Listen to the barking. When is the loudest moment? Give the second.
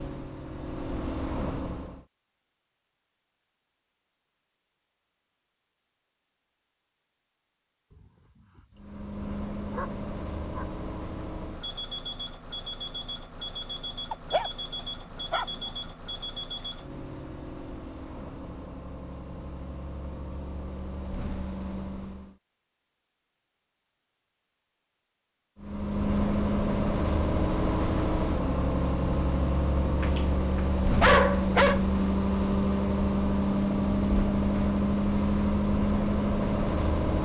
31 s.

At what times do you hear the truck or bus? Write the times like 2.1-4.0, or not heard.
0.0-2.0, 8.8-22.4, 25.6-37.1.